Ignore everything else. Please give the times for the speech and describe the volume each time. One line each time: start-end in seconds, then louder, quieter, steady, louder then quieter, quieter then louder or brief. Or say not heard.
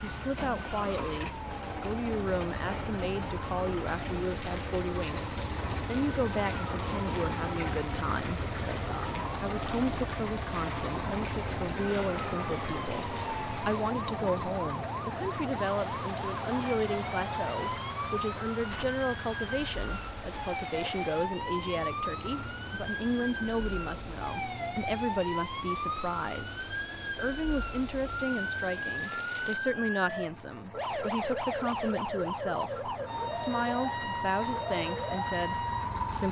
0.0-36.2 steady.